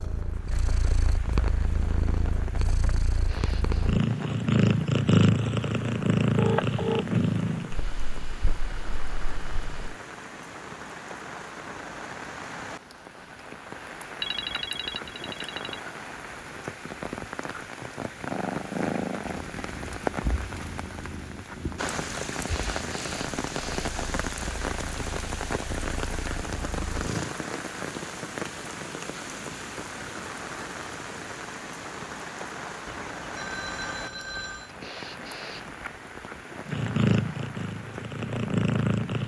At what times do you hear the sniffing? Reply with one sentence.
You can hear the sniffing from 3.1 to 4.0 s, from 22.4 to 24.1 s and from 34.6 to 35.8 s.